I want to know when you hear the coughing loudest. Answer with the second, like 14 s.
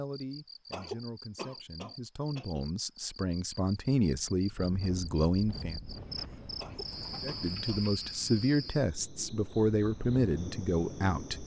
1 s.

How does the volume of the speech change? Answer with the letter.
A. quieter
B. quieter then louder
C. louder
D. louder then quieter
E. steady
C.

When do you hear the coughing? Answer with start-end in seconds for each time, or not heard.
0.7-2.6, 6.5-7.8.